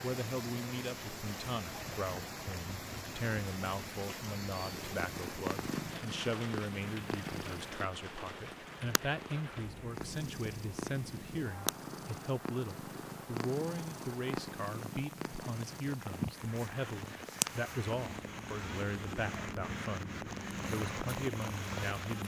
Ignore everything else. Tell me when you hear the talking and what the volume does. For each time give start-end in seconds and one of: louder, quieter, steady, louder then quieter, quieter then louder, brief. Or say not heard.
0.0-22.2 steady.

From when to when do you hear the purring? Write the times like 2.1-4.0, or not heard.
4.6-22.2.